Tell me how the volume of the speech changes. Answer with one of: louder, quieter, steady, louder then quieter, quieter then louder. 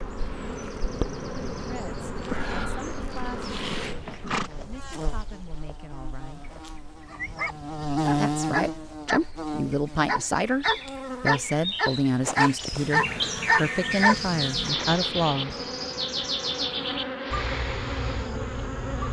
louder.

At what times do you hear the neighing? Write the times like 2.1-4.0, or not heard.
3.7-4.5, 13.1-14.1.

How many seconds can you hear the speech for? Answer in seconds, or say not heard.
12 s.